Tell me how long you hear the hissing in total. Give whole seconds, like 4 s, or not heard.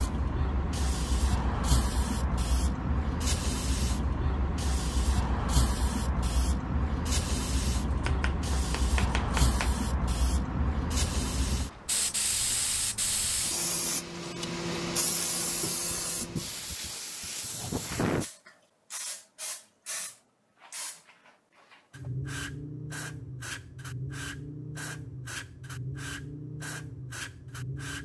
28 s.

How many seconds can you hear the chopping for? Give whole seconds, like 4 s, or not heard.
2 s.